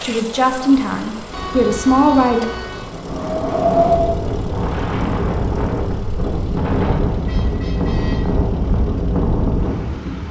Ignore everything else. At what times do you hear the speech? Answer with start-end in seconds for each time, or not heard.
0.0-2.5.